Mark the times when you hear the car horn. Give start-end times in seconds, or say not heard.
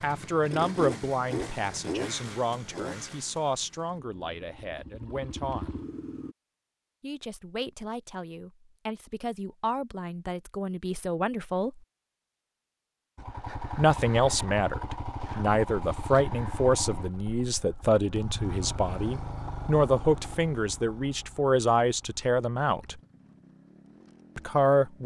not heard.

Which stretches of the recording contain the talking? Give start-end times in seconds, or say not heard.
0.0-5.8, 7.0-11.8, 13.8-23.0, 24.4-25.0.